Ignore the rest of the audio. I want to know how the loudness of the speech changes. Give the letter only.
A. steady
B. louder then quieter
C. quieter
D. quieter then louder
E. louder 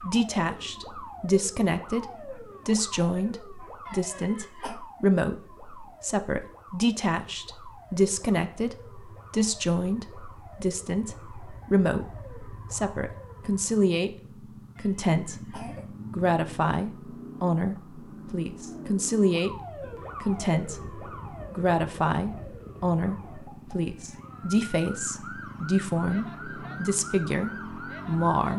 A.